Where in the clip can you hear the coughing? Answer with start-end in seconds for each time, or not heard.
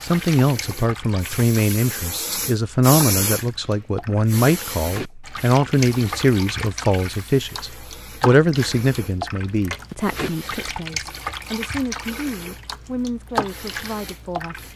not heard.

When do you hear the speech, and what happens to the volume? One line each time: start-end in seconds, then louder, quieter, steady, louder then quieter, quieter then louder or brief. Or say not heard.
0.0-14.6 quieter.